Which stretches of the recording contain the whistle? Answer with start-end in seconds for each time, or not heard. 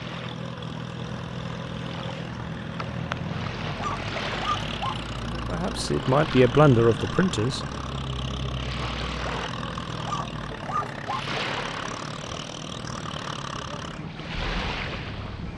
not heard.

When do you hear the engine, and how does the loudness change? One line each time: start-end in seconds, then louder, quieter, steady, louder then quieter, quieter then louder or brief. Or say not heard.
0.0-15.5 steady.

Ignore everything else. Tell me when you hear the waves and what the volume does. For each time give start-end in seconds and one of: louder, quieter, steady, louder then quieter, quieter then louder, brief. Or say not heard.
0.0-15.5 steady.